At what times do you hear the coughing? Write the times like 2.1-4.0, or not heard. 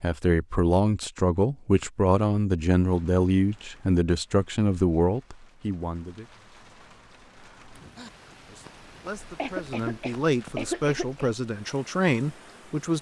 9.3-11.2.